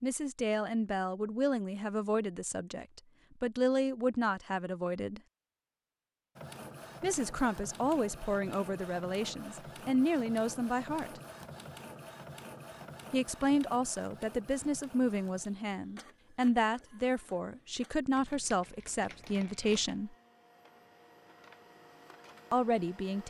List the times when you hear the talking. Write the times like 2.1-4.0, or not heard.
0.0-5.2, 7.0-11.2, 13.1-20.1, 22.5-23.2.